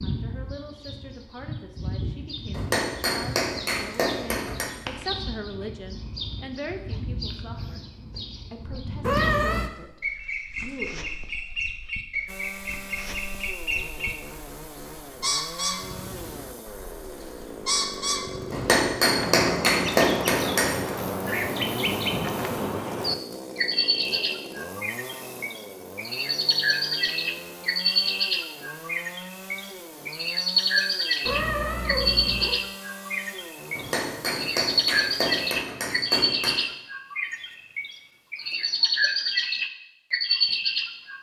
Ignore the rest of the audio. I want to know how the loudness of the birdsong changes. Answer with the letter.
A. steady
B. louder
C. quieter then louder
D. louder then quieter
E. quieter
B.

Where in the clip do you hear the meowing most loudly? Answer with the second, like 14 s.
9 s.